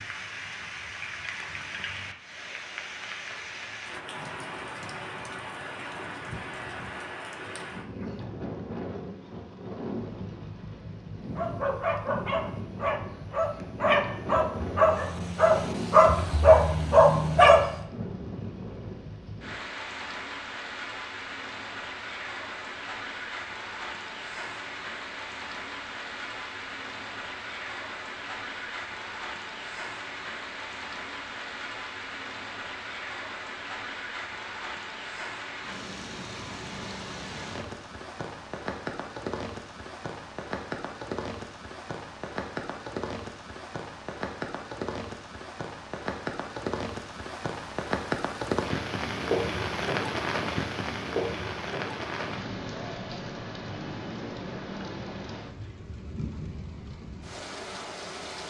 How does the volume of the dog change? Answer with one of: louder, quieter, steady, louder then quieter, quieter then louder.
louder.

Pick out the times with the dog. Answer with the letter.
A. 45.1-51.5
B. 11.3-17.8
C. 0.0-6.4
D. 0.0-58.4
B.